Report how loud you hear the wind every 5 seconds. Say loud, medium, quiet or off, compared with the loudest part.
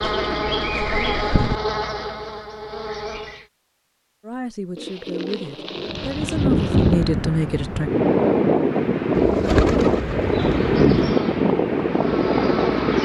off, loud, loud.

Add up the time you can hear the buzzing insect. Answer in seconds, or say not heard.
6 s.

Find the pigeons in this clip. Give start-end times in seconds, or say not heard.
0.0-1.6, 4.8-7.0, 9.1-11.2.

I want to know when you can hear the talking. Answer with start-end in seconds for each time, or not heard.
4.2-7.9.